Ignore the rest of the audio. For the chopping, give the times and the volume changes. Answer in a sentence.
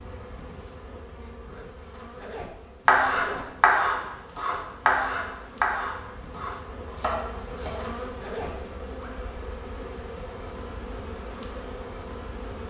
You can hear the chopping from 2.9 to 7.8 s, getting quieter.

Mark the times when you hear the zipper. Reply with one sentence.
You can hear the zipper from 1.4 to 3.5 s and from 7.5 to 9.2 s.